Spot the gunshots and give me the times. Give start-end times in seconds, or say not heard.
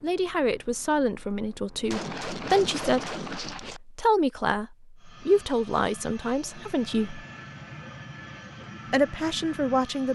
1.8-3.8.